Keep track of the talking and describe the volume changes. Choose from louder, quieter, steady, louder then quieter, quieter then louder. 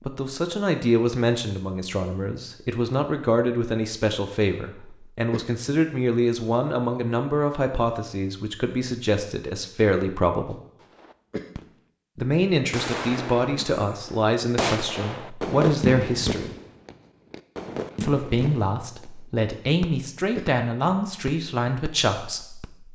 steady.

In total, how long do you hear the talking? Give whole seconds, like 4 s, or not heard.
20 s.